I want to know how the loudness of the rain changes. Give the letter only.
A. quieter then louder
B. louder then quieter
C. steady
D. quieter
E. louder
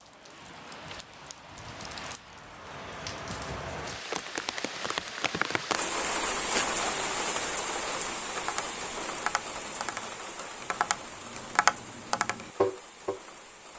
B.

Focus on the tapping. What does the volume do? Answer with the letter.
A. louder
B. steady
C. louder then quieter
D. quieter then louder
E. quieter
A.